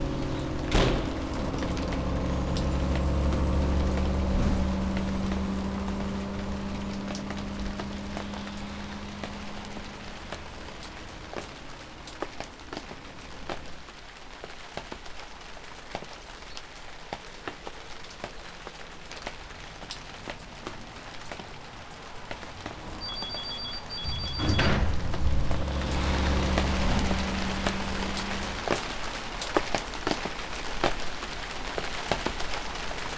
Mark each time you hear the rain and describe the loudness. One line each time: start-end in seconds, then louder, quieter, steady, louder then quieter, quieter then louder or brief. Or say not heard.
0.0-33.1 louder.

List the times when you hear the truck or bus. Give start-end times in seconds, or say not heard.
0.0-13.9, 22.6-28.6.